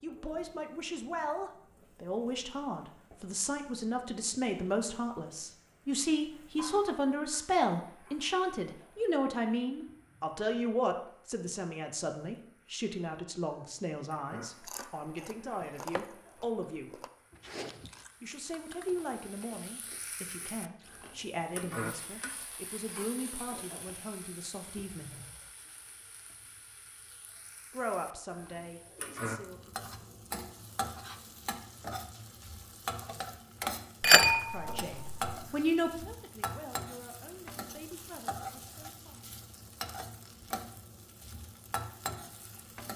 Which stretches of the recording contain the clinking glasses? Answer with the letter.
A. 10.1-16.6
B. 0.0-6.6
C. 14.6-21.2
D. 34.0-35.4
D.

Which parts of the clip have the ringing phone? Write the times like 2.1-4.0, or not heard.
not heard.